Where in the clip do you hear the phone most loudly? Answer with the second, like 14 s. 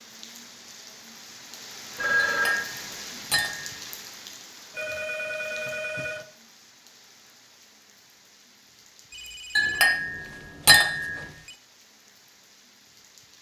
2 s.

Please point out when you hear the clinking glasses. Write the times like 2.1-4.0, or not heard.
2.3-3.7, 9.6-11.3.